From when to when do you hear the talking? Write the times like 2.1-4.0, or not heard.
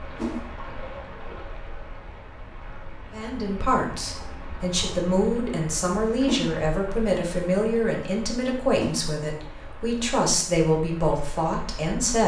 3.1-12.2.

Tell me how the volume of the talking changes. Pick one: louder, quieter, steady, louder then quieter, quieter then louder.
steady.